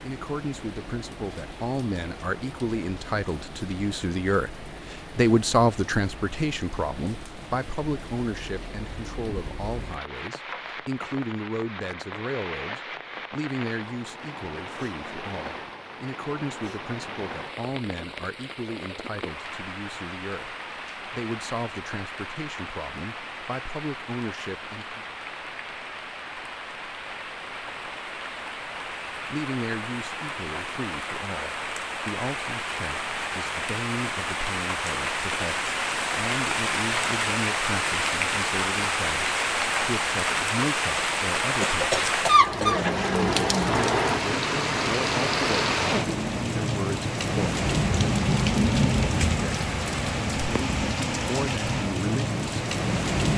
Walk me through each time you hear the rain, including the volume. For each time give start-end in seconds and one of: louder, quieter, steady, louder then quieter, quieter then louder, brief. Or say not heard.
0.0-53.3 louder.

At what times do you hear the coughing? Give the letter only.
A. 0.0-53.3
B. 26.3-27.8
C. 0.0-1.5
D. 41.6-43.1
D.